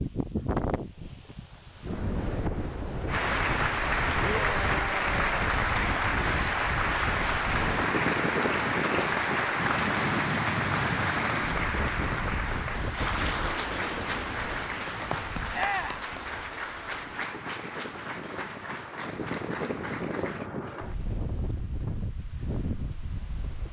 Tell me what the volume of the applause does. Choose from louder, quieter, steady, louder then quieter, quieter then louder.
quieter.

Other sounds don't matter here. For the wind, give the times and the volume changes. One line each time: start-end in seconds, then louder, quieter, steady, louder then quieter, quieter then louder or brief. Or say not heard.
0.0-23.6 quieter then louder.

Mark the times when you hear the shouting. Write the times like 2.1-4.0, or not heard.
4.2-5.2, 15.5-16.1.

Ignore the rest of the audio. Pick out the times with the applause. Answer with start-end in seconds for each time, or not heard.
3.0-20.5.